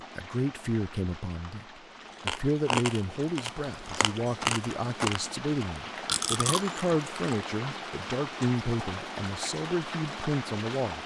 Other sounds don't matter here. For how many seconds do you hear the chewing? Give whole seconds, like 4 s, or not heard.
5 s.